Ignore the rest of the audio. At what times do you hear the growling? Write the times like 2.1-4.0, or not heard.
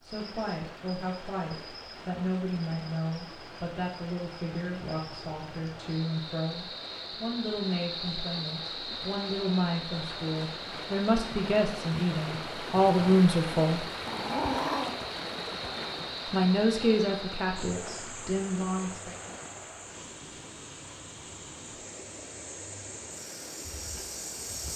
14.1-14.9.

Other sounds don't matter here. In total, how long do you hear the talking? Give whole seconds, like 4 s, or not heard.
17 s.